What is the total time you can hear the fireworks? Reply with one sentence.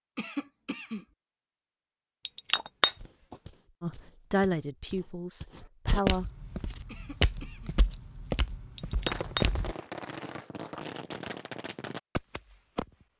The fireworks can be heard for 4 seconds in total.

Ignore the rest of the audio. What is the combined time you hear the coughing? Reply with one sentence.
You can hear the coughing for 2 seconds altogether.